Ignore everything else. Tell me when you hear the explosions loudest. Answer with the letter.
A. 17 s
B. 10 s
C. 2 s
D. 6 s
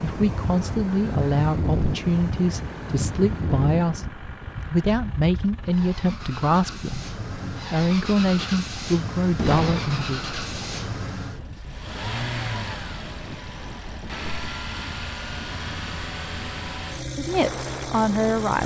B.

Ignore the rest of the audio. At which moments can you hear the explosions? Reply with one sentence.
The explosions can be heard from 9.3 to 11.6 s.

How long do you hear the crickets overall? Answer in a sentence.
You can't hear the crickets here.